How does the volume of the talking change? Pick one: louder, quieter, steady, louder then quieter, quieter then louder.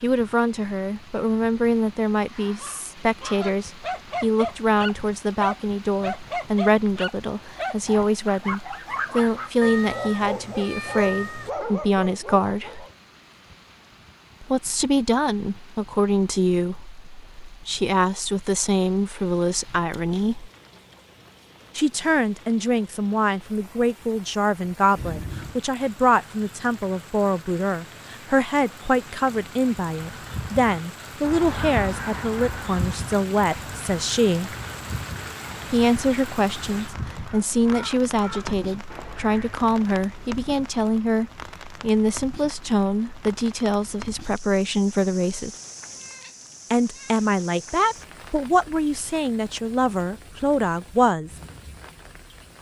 steady.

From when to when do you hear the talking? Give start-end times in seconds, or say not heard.
0.0-12.8, 14.4-20.5, 21.8-34.5, 35.7-45.5, 46.7-51.3.